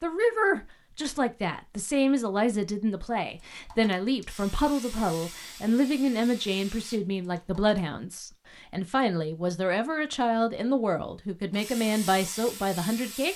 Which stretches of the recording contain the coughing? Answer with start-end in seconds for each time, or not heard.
not heard.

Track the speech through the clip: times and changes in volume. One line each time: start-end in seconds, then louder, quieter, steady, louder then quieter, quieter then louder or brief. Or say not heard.
0.0-13.3 steady.